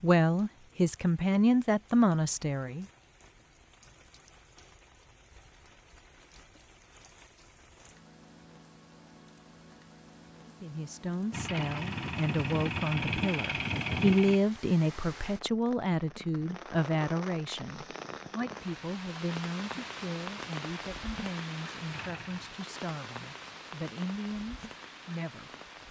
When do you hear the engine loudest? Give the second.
14 s.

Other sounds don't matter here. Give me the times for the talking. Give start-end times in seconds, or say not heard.
0.0-2.9, 10.4-25.6.